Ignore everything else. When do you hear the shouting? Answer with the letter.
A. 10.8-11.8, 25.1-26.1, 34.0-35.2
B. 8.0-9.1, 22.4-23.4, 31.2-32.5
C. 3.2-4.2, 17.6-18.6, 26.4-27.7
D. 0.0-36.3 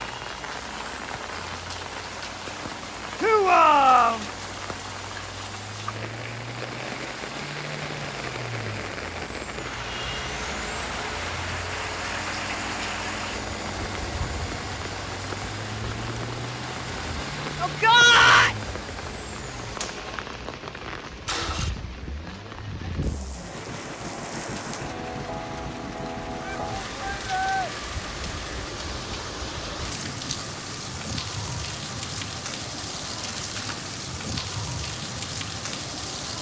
C.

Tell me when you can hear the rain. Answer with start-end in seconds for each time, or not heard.
0.0-36.3.